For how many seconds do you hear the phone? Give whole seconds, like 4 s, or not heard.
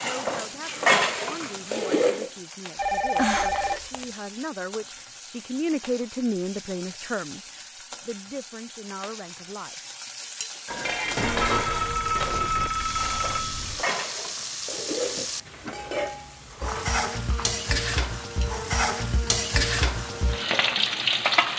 4 s.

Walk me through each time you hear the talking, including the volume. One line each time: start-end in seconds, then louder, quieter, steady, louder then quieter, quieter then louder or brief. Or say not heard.
0.0-9.8 louder then quieter.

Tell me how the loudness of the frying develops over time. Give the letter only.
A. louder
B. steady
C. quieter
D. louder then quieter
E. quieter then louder
A.